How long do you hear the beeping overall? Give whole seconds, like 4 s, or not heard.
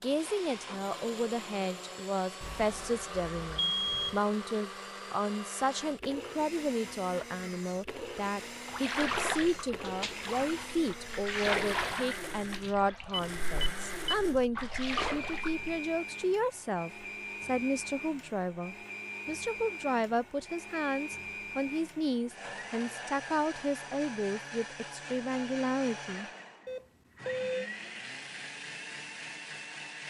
4 s.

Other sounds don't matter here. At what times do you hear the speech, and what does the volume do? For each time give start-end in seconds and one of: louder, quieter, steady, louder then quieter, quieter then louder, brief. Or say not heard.
0.0-26.2 steady.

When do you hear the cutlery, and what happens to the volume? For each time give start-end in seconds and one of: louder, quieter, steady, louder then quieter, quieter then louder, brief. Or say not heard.
not heard.